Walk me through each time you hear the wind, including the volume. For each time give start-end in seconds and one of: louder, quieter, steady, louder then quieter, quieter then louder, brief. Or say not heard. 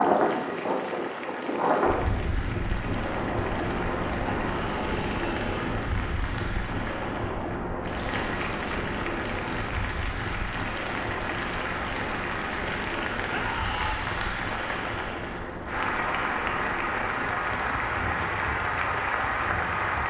0.0-20.0 quieter.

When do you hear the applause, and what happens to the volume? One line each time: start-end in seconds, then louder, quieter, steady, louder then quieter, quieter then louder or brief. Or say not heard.
0.0-20.0 louder.